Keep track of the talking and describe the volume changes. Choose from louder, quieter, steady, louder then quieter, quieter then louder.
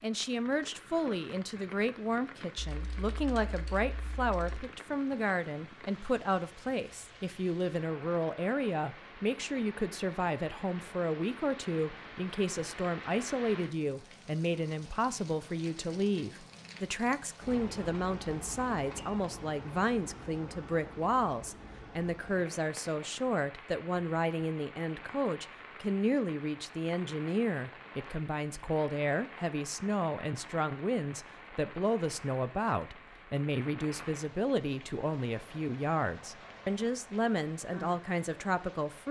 steady.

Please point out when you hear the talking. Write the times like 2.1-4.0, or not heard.
0.0-39.0.